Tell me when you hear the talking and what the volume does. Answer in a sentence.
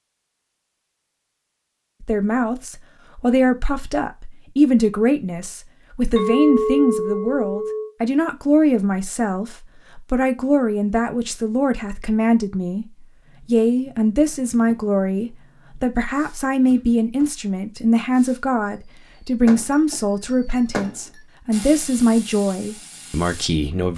The talking can be heard from 2.0 to 12.8 s, at a steady volume; and from 13.4 to 23.9 s, at a steady volume.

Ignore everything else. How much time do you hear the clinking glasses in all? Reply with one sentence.
You can hear the clinking glasses for 3 seconds altogether.